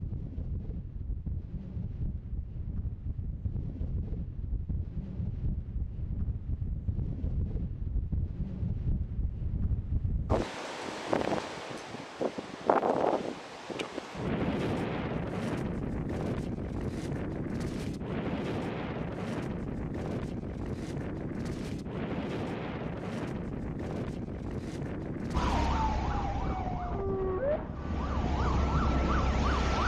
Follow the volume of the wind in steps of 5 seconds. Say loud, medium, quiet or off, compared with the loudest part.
medium, medium, loud, loud, loud, medium.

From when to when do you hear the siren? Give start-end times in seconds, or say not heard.
25.3-29.8.